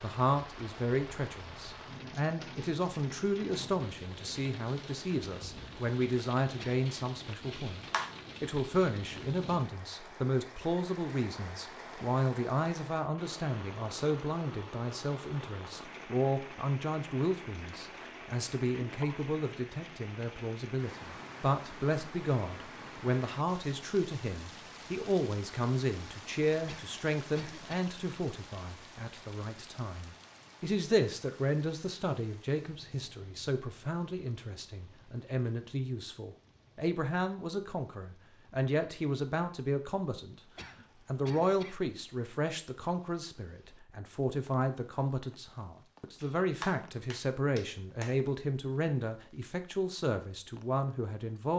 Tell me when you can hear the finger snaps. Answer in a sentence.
You can hear the finger snaps from 7.5 to 8.1 s and from 46.2 to 48.1 s.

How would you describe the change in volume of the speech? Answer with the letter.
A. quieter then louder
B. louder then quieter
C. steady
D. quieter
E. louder
C.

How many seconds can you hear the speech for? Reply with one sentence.
The speech can be heard for 51 seconds in total.